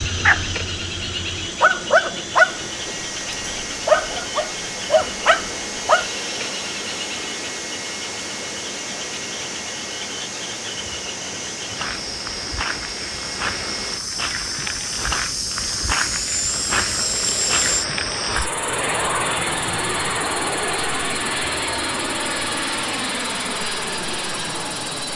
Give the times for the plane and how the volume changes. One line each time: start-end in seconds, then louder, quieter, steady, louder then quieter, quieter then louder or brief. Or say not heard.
0.0-25.1 louder.